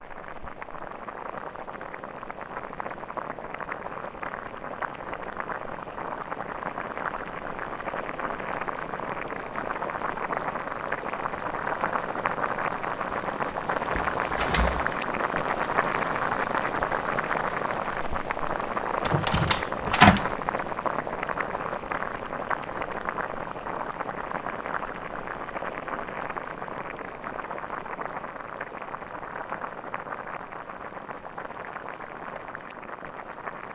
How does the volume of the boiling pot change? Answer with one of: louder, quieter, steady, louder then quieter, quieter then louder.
louder then quieter.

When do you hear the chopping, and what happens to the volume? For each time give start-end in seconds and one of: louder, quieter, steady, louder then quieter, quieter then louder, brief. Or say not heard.
not heard.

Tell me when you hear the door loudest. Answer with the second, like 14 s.
20 s.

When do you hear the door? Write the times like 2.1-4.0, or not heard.
13.9-14.9, 19.1-20.3.